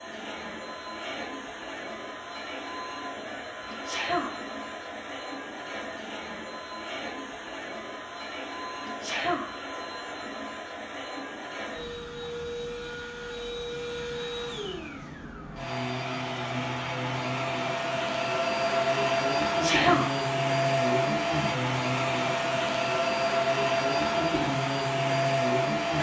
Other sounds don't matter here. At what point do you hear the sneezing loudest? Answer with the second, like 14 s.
20 s.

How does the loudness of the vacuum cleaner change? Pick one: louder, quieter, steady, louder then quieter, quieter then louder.
louder.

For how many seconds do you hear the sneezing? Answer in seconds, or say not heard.
2 s.